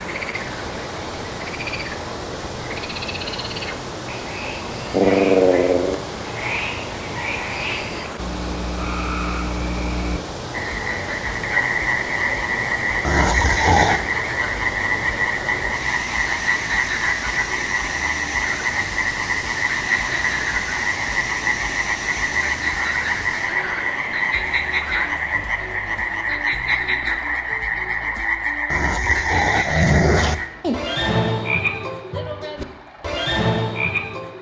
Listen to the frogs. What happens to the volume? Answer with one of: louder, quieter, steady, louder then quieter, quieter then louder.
louder.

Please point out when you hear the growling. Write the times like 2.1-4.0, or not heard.
4.9-6.0, 13.0-14.1, 28.7-30.4.